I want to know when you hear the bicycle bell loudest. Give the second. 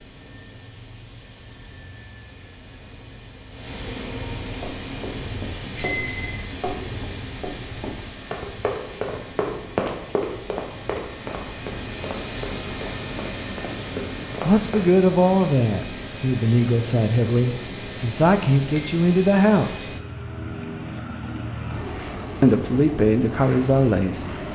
6 s.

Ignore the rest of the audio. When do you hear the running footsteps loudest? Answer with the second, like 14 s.
10 s.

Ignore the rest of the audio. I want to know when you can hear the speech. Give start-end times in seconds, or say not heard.
14.4-19.9, 22.4-24.2.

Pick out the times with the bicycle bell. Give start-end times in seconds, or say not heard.
5.8-6.4, 18.8-19.4.